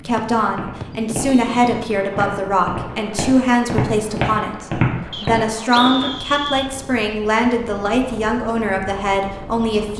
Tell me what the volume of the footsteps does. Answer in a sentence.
The loudness of the footsteps goes up.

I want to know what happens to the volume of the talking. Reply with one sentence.
The loudness of the talking stays about the same.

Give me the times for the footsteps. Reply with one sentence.
You can hear the footsteps from 0.4 to 6.1 s.